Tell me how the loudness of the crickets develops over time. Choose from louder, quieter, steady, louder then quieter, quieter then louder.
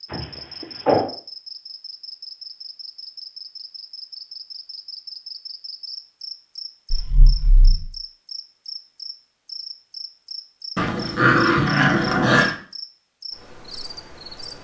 steady.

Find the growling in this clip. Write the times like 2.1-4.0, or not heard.
0.1-1.1, 6.9-7.8, 10.8-12.6.